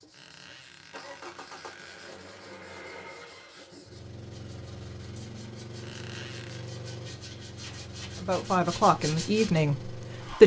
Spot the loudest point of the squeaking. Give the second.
6 s.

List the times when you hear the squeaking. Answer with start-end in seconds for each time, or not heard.
0.1-2.1, 5.8-6.7.